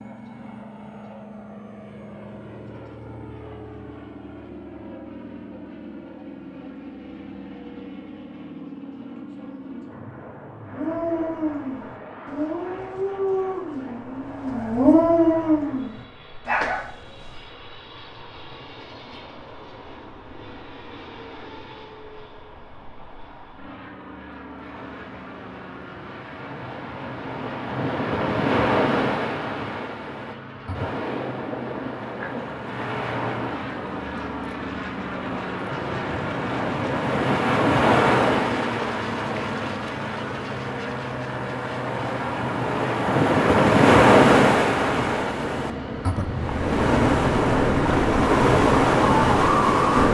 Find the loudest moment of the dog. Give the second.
15 s.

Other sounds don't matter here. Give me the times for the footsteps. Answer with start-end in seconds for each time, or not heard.
not heard.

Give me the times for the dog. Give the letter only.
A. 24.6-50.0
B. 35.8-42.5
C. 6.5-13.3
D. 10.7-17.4
D.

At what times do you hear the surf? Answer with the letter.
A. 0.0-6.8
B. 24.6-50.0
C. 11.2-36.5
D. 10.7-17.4
B.